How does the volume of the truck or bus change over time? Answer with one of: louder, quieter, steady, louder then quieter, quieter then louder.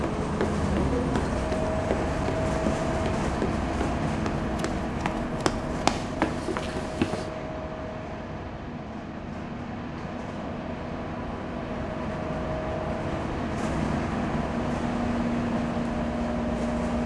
quieter then louder.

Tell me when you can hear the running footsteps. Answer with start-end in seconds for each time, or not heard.
0.2-7.3.